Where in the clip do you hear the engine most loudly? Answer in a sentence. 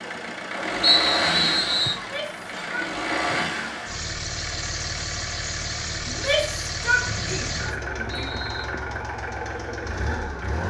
The loudest moment of the engine is at 1 second.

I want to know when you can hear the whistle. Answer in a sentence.
You can hear the whistle from 0.8 to 2.0 s and from 7.0 to 8.7 s.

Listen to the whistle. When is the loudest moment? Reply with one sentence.
The volume of the whistle peaks at 1 second.